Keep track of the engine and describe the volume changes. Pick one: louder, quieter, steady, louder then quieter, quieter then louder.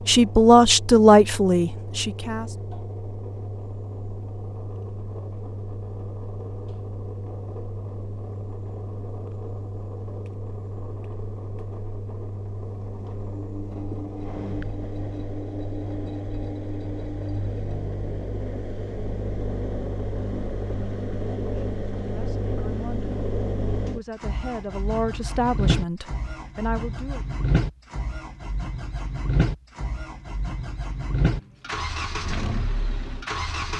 louder.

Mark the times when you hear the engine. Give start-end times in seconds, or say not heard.
0.0-33.7.